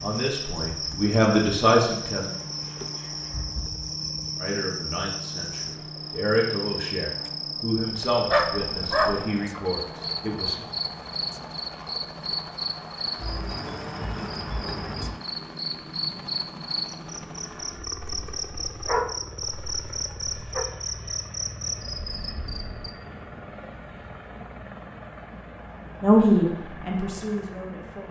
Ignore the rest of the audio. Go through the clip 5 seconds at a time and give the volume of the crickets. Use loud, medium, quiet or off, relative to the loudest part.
loud, loud, loud, loud, loud, off.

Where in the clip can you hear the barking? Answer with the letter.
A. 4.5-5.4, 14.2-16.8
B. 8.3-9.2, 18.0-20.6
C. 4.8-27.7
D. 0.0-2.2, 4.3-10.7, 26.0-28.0
B.